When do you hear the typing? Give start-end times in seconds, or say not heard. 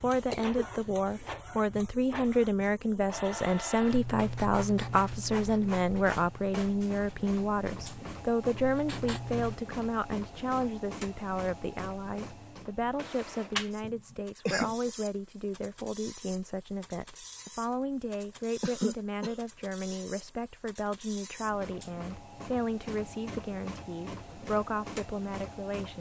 not heard.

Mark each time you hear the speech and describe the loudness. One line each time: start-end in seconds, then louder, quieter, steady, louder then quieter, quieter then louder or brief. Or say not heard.
0.0-25.9 quieter.